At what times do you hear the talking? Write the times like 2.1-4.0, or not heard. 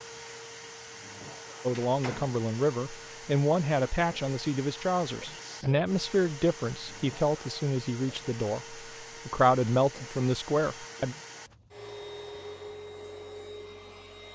1.6-11.2.